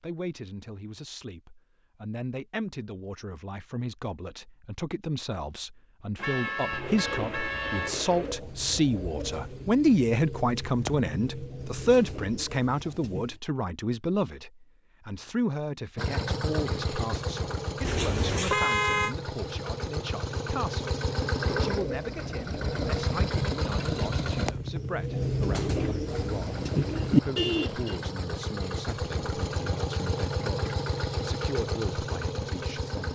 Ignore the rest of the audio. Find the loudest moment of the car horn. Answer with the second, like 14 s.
19 s.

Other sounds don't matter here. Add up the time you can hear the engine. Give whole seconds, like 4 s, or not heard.
16 s.